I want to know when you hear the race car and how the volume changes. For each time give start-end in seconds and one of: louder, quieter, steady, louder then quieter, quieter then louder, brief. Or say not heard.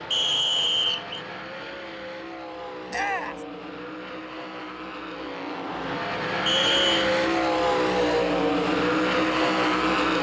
0.0-10.1 louder.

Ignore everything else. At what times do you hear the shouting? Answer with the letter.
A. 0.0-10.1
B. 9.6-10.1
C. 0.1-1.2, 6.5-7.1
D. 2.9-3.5
D.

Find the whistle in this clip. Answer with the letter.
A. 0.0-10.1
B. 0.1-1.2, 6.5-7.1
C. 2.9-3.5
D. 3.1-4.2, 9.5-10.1
B.